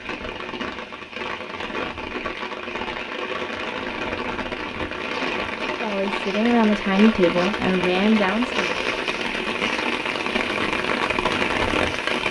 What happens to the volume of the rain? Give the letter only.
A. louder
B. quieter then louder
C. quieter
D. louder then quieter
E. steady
A.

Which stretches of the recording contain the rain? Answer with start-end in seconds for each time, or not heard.
0.0-12.2.